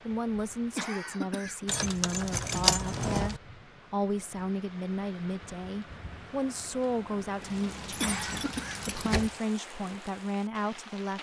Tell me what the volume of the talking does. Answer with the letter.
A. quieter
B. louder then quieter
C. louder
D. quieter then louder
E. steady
E.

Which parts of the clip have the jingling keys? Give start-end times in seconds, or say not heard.
1.6-3.4, 7.9-9.3.